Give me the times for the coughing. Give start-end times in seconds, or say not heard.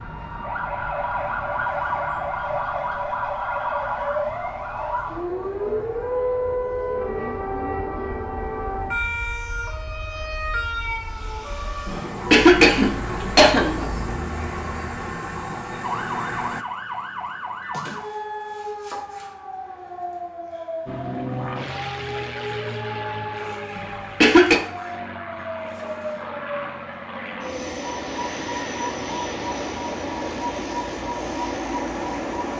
12.3-13.8, 23.8-24.6.